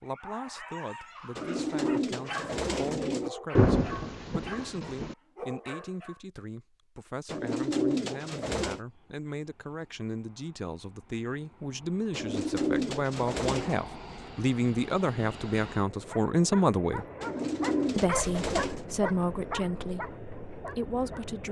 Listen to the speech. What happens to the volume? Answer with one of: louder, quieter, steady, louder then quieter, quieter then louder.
louder.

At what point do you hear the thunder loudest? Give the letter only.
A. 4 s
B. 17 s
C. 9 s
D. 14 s
A.